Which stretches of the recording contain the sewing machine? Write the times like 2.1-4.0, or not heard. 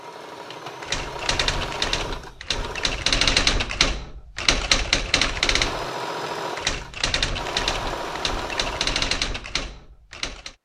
0.0-3.0, 5.3-9.0.